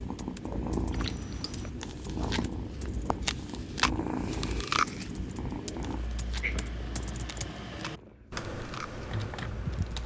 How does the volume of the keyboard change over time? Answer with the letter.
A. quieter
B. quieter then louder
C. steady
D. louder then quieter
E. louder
E.